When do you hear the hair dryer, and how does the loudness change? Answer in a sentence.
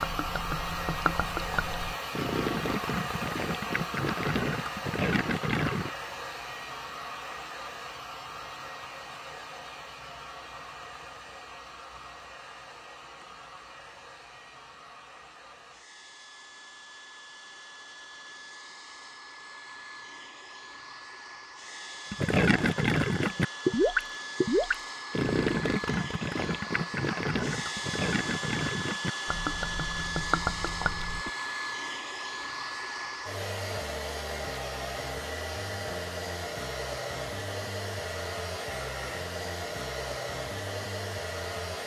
You can hear the hair dryer from 0.0 to 41.8 s, getting quieter then louder.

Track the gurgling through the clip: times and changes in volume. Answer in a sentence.
The gurgling can be heard from 0.0 to 5.9 s, at a steady volume; and from 22.1 to 31.3 s, getting quieter.